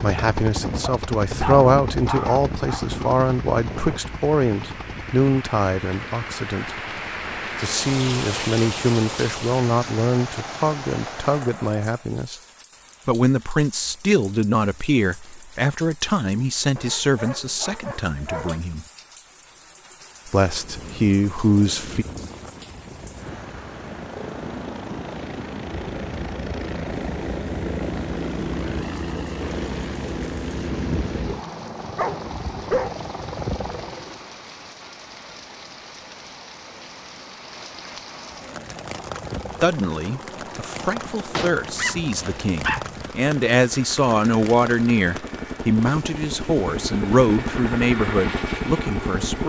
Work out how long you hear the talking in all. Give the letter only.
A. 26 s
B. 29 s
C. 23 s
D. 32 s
B.